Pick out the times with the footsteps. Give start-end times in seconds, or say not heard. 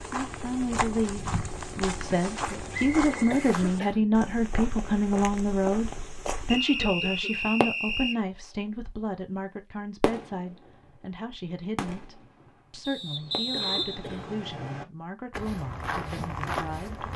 0.0-6.6, 15.3-17.1.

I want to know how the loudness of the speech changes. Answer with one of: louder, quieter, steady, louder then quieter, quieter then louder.
quieter.